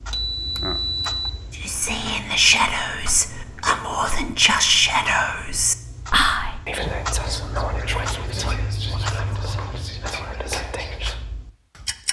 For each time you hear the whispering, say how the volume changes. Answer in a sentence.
You can hear the whispering from 1.5 to 11.2 s, getting quieter.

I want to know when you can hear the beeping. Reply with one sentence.
The beeping can be heard from 0.1 to 1.1 s.